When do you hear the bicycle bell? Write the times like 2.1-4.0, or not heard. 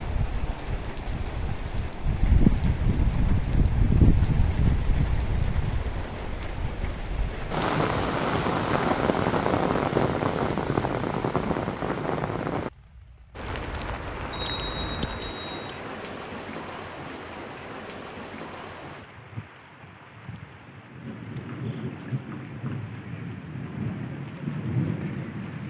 14.3-15.7.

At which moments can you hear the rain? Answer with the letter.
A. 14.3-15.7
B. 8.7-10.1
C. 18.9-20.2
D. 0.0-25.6
D.